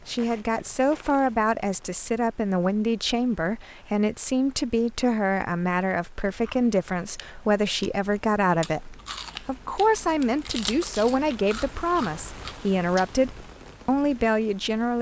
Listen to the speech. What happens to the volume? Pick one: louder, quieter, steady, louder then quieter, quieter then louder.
steady.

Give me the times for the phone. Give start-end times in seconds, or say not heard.
not heard.